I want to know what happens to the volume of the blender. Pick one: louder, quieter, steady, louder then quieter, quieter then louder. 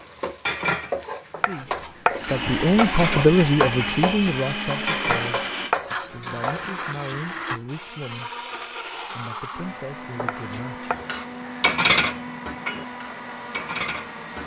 quieter.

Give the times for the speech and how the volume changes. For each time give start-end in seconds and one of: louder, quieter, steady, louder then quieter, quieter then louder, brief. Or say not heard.
1.4-10.9 quieter.